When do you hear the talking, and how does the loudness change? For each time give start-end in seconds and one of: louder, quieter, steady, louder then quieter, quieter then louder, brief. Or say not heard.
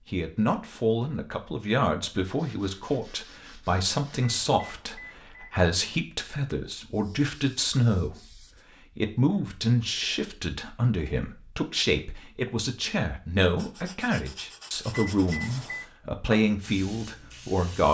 0.1-17.8 steady.